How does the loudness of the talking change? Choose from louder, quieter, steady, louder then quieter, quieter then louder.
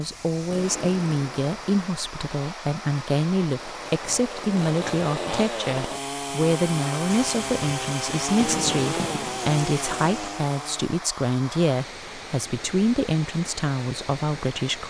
steady.